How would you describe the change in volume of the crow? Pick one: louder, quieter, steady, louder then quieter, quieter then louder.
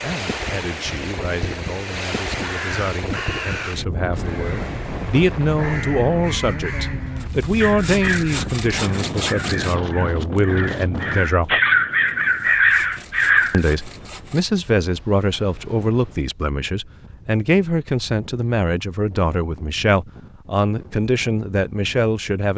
louder.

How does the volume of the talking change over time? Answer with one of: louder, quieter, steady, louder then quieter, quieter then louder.
louder.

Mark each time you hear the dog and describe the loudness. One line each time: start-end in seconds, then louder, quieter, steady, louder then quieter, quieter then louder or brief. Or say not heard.
not heard.